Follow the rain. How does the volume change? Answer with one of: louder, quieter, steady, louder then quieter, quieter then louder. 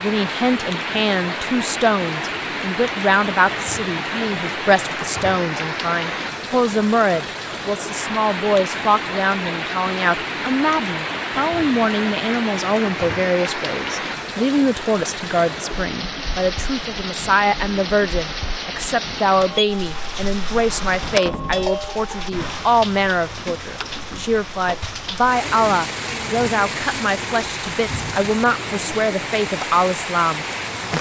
steady.